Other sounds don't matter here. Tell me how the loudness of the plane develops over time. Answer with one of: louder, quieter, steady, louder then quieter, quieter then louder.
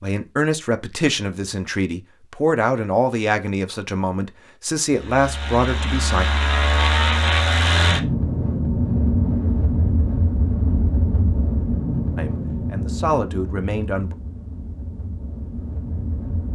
quieter.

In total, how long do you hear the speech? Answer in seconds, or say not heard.
8 s.